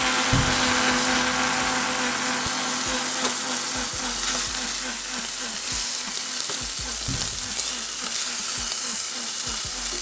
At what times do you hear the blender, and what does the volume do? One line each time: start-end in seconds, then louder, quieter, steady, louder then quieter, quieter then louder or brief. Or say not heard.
0.0-9.9 quieter.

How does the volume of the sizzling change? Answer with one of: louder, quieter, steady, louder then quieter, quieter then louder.
steady.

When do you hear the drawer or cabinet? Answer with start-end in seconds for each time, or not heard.
0.3-0.8, 7.0-7.5.